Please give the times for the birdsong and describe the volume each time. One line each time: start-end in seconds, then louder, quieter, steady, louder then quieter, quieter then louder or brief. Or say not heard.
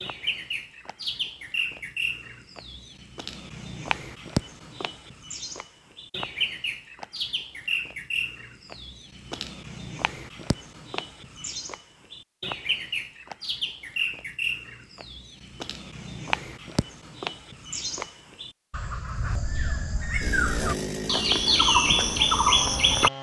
0.0-23.1 louder.